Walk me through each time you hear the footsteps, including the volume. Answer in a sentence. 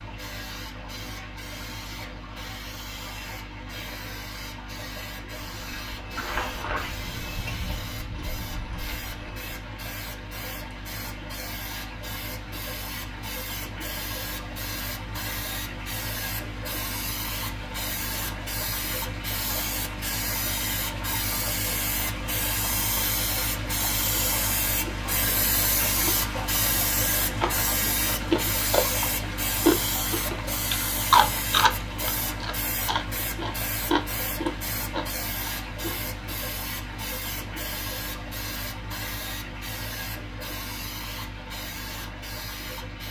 You can hear the footsteps from 5.5 to 9.6 s, getting quieter.